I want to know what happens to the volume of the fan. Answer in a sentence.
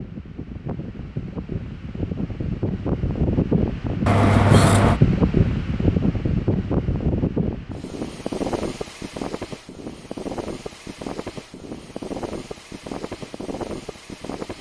The volume of the fan goes up, then down.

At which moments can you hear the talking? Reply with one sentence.
The talking can't be heard in this clip.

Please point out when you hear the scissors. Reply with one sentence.
The scissors can be heard from 4.0 to 5.0 s.